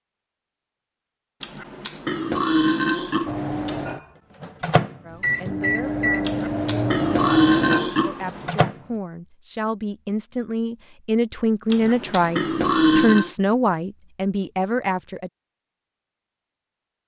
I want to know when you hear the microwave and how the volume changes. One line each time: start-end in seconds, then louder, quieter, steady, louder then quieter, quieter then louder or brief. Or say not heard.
3.2-8.9 louder then quieter.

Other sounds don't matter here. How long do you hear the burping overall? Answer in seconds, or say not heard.
6 s.